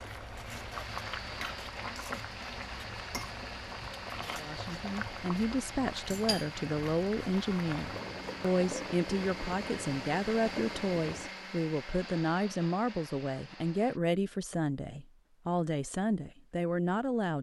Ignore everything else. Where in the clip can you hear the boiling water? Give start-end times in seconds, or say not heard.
0.0-11.3.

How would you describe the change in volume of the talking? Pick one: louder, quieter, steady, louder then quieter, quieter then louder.
steady.